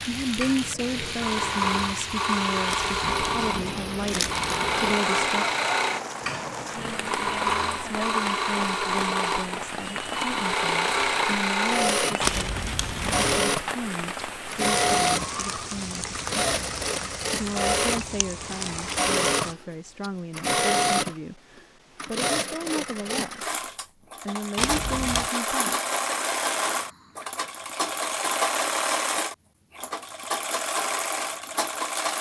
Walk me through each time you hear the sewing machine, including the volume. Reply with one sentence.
You can hear the sewing machine from 0.0 to 32.1 s, at a steady volume.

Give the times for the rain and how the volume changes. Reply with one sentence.
The rain can be heard from 0.0 to 19.6 s, at a steady volume.